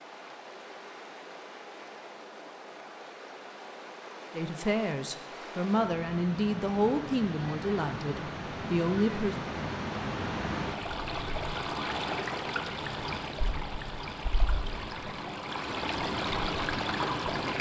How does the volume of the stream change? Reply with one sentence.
The loudness of the stream goes up.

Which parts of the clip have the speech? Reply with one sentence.
You can hear the speech from 4.3 to 9.3 s.